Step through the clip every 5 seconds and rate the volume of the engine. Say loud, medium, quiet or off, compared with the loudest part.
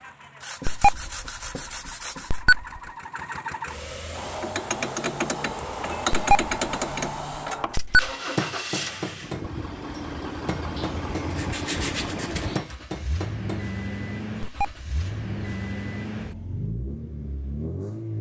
medium, loud, loud, loud.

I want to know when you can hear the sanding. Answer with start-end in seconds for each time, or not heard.
0.4-2.5, 10.8-12.8.